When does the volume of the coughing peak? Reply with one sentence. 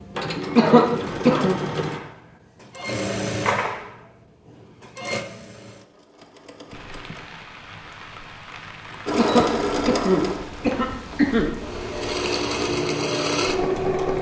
The volume of the coughing peaks at 1 second.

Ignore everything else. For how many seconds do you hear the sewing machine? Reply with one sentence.
The sewing machine can be heard for 12 seconds in total.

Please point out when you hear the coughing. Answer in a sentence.
You can hear the coughing from 0.6 to 1.6 s and from 9.2 to 11.5 s.